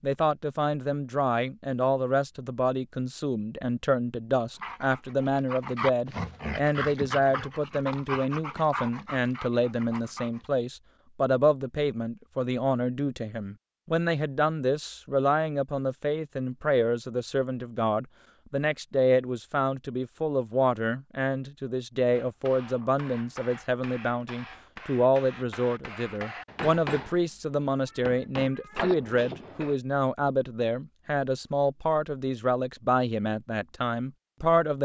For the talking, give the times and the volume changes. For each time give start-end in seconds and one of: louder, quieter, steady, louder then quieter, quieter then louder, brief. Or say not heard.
0.0-34.8 steady.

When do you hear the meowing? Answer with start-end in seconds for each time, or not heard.
27.9-28.9.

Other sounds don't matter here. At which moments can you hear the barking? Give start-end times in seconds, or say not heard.
4.5-10.5.